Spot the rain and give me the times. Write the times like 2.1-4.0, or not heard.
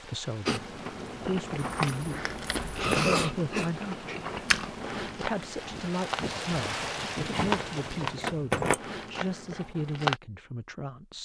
0.0-8.4.